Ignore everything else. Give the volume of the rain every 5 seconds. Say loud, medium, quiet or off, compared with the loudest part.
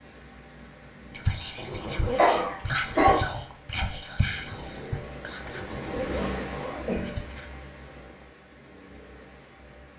medium, loud.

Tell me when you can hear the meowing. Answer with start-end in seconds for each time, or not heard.
not heard.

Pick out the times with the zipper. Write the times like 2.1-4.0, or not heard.
1.6-2.3, 5.4-7.0.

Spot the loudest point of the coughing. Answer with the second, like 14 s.
3 s.